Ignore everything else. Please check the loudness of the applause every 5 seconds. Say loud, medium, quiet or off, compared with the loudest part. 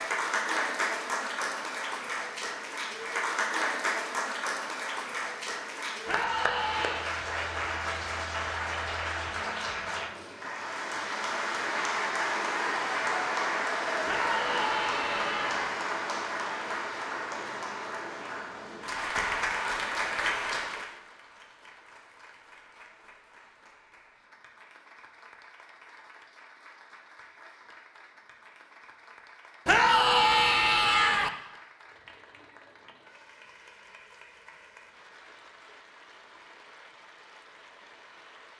loud, loud, loud, loud, medium, quiet, quiet, quiet.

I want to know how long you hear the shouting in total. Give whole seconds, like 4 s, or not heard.
4 s.